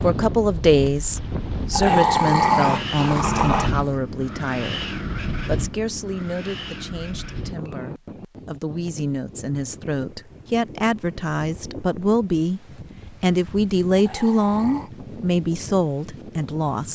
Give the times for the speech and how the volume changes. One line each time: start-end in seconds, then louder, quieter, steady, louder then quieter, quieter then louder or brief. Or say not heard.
0.0-16.9 quieter then louder.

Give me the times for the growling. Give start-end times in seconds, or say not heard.
1.7-3.9, 13.9-14.9.